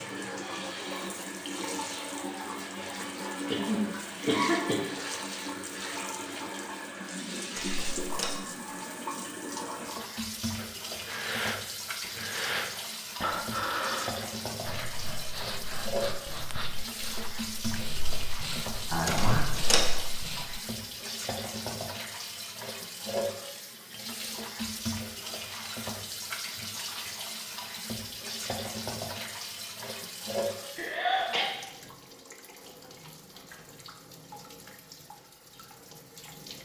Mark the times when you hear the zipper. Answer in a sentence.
You can't hear the zipper here.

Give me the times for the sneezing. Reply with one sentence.
You can hear the sneezing from 3.5 to 4.8 s, from 18.9 to 19.5 s and from 30.8 to 31.5 s.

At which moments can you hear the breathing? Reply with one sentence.
The breathing can be heard from 10.6 to 20.6 s.